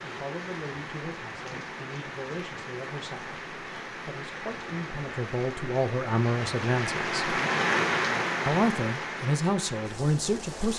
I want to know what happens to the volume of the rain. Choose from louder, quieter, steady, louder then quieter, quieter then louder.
louder then quieter.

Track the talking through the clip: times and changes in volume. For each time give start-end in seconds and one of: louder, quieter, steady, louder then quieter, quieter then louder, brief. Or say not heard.
0.0-7.2 louder
8.4-10.7 brief.